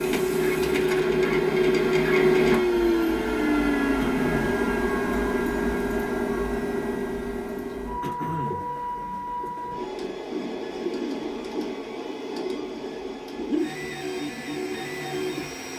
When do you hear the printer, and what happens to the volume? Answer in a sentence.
The printer can be heard from 0.0 to 15.7 s, getting quieter.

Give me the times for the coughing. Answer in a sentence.
The coughing can be heard from 4.0 to 4.6 s and from 8.0 to 8.7 s.